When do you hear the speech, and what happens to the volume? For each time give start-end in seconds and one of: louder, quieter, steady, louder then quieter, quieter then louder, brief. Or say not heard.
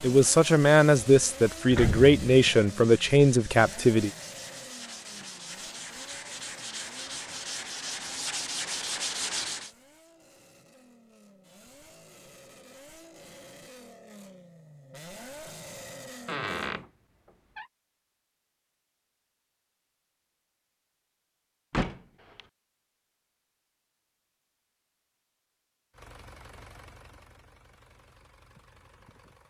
0.0-4.1 steady.